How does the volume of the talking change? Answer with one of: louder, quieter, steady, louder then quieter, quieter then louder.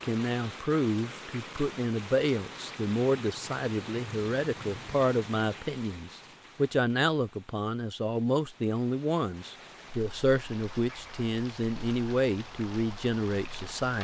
steady.